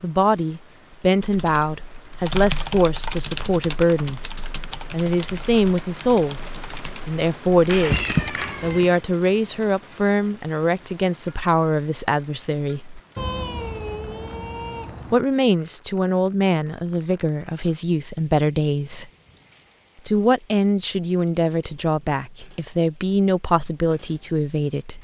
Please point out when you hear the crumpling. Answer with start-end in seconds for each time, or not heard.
7.8-8.8.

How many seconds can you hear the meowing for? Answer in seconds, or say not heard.
3 s.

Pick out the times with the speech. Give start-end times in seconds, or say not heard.
0.0-4.3, 4.9-13.0, 15.1-19.1, 20.1-24.9.